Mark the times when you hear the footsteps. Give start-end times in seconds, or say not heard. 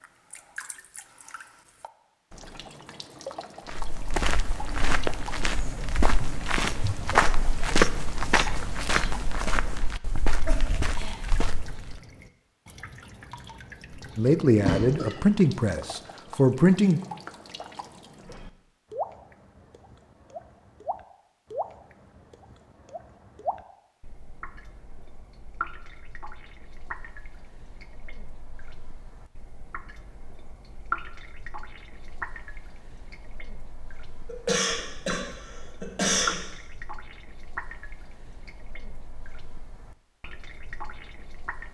3.6-12.0.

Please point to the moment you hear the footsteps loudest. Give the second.
8 s.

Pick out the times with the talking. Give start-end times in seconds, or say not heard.
14.2-17.0.